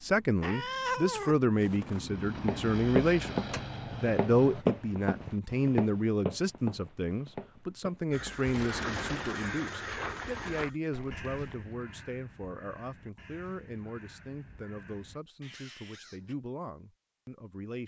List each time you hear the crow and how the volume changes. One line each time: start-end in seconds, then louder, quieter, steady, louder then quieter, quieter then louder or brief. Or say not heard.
8.1-16.4 quieter.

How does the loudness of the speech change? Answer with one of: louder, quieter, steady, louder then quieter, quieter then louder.
quieter.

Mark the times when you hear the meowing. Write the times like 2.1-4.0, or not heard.
0.4-1.4.